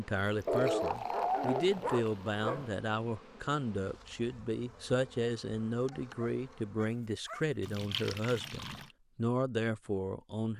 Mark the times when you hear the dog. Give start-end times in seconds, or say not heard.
0.5-2.7, 5.9-7.5.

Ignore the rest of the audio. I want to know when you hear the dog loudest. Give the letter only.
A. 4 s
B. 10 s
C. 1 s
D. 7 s
C.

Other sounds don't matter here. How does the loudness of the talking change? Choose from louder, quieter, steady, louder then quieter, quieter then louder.
steady.